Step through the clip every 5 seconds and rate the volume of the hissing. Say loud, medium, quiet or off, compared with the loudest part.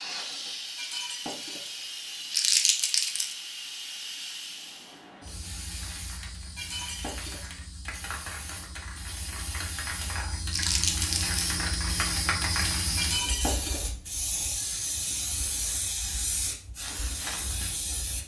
medium, medium, loud, loud.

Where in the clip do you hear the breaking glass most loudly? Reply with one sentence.
The loudest moment of the breaking glass is at 13 seconds.